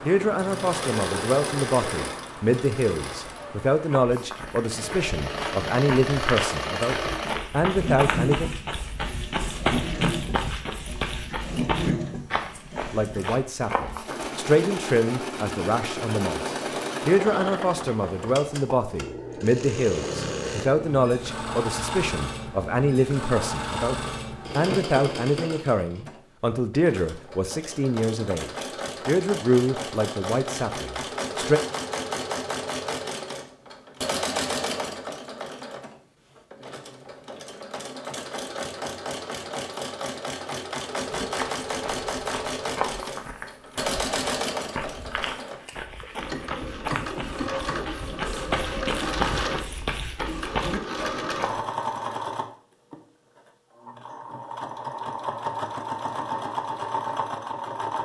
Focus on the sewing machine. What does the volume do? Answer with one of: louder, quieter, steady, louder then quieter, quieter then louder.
steady.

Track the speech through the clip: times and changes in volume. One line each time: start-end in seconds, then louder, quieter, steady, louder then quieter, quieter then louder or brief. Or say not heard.
0.0-8.5 steady
12.8-31.6 steady.